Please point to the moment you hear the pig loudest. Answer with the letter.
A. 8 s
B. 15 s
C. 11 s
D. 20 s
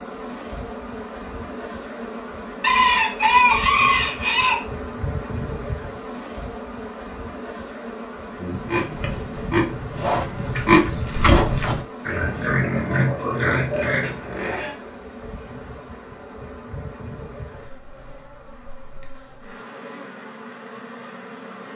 C.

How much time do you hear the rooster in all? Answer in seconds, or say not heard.
2 s.